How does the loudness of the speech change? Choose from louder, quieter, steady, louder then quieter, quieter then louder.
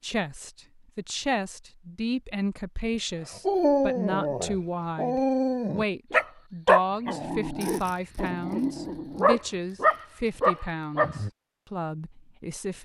steady.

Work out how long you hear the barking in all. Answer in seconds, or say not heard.
8 s.